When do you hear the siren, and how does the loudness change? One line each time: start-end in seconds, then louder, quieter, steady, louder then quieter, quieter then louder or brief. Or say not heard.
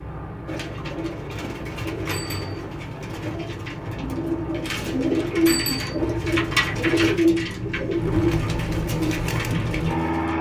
not heard.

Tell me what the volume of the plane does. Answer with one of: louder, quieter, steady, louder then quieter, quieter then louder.
louder.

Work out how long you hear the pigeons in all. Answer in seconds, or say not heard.
10 s.